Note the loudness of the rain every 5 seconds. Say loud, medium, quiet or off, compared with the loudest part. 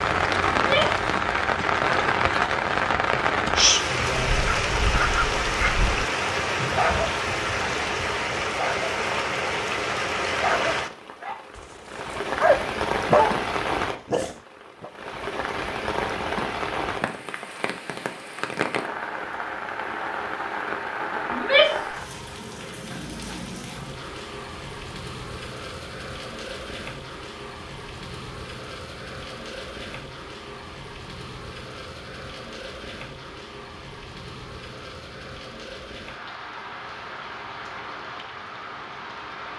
loud, loud, medium, medium, medium, quiet, quiet, quiet.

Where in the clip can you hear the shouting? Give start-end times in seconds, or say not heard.
0.5-1.0, 21.3-21.9.